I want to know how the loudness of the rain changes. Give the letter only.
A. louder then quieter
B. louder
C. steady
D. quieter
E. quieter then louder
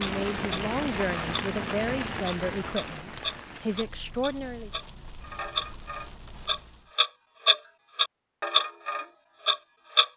D.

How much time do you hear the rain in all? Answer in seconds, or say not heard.
7 s.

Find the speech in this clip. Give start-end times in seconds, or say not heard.
0.0-4.7.